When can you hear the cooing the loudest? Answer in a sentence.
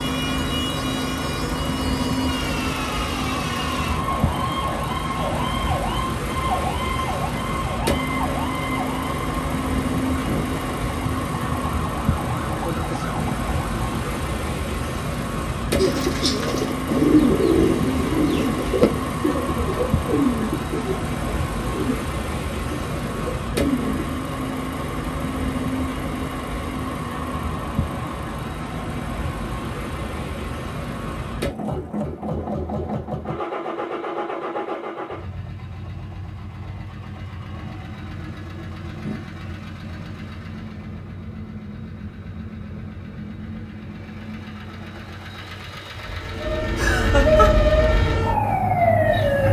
The volume of the cooing peaks at 17 seconds.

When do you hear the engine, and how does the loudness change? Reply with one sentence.
The engine can be heard from 0.0 to 49.4 s, getting quieter.